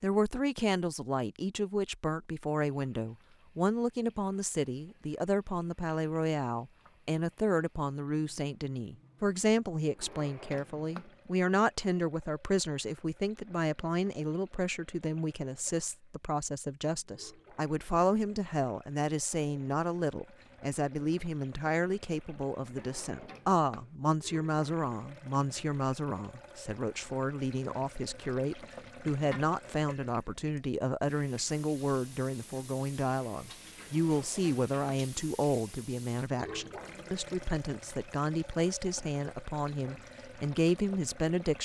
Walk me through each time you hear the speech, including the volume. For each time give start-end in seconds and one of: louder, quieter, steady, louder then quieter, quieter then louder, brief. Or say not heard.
0.0-41.6 steady.